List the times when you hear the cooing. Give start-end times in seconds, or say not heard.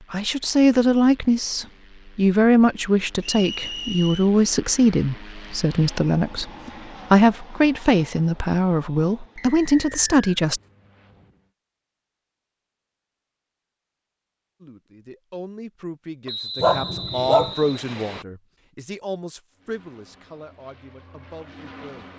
not heard.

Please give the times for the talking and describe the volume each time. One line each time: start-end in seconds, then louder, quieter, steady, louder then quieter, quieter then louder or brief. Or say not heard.
0.1-10.6 steady
14.6-22.1 louder then quieter.